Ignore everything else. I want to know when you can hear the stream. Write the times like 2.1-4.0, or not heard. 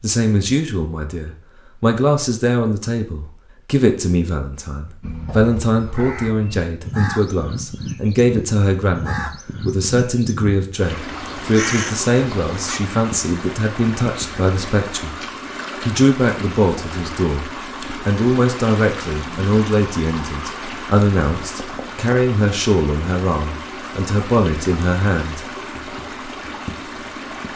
10.8-27.5.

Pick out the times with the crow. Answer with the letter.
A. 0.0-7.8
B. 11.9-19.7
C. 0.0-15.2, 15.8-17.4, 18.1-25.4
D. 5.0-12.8
D.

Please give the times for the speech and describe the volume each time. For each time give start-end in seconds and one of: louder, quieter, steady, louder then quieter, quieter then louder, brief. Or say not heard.
0.0-15.2 steady
15.8-17.4 brief
18.1-25.4 steady.